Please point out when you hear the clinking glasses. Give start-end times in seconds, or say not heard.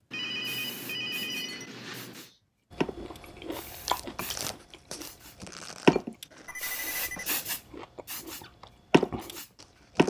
1.2-2.4.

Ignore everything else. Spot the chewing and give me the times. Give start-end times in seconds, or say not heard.
2.7-10.0.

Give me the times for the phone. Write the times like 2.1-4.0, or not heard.
0.1-2.3, 6.5-7.3.